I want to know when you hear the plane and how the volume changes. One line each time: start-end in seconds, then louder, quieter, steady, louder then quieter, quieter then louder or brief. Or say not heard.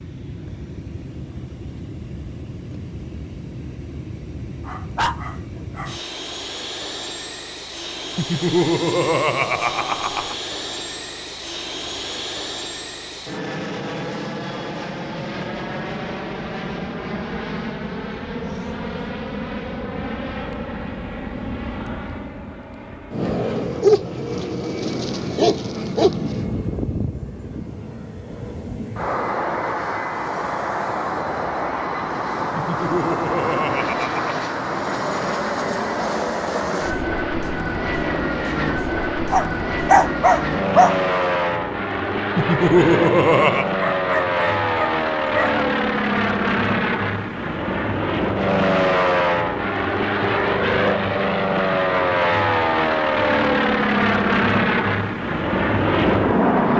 0.0-56.7 louder.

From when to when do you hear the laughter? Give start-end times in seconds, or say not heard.
8.2-10.3, 32.5-34.2, 42.4-43.7.